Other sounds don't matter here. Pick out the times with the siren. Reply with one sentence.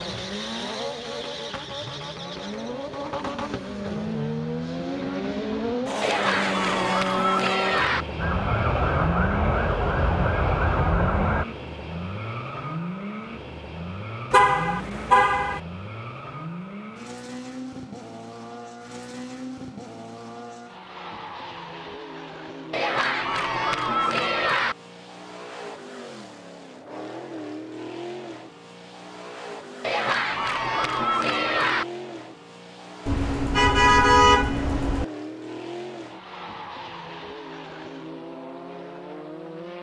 You can hear the siren from 8.2 to 11.4 s.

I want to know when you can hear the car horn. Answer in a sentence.
You can hear the car horn from 14.3 to 15.6 s and from 33.0 to 35.0 s.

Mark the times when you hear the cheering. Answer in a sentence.
The cheering can be heard from 6.0 to 8.1 s, from 22.7 to 24.8 s and from 29.8 to 31.9 s.